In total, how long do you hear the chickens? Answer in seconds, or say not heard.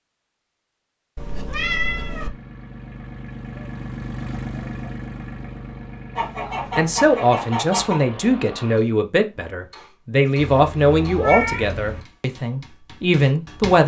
2 s.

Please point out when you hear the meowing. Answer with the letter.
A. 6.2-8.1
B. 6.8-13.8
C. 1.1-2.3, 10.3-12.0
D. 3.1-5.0
C.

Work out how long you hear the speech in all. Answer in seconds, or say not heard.
7 s.